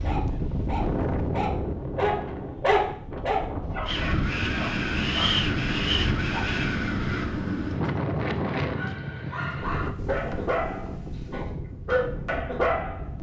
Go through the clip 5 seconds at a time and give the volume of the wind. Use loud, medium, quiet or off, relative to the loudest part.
loud, loud, medium.